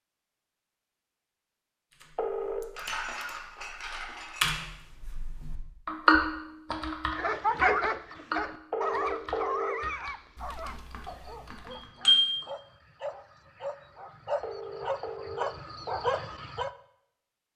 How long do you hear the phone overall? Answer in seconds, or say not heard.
3 s.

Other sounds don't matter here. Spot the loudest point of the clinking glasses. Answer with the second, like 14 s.
12 s.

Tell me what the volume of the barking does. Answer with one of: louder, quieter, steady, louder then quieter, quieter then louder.
quieter then louder.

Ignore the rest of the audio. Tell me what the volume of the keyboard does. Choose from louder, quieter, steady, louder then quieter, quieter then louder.
louder then quieter.